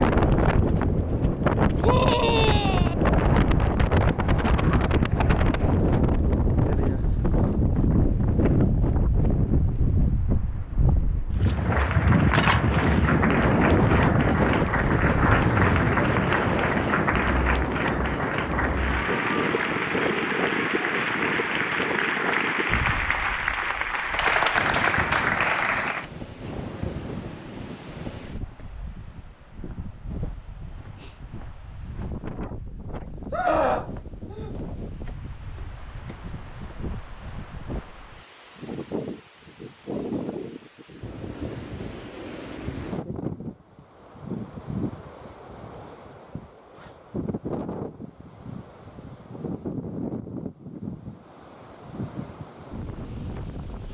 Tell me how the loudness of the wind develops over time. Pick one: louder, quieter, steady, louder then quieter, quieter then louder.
quieter.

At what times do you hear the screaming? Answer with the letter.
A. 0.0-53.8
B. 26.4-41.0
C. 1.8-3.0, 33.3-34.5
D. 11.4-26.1
C.